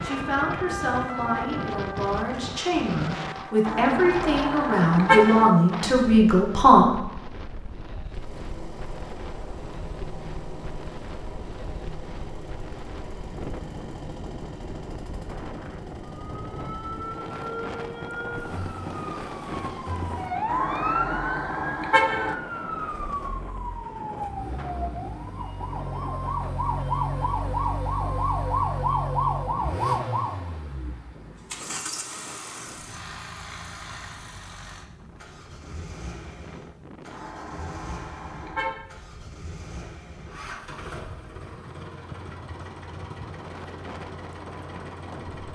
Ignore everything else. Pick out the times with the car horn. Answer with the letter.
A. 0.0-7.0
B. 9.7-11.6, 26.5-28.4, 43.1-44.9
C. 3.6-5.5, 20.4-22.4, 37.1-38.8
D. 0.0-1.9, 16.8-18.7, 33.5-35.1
C.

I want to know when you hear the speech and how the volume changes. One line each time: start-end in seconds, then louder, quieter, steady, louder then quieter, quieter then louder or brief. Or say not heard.
0.0-7.0 louder.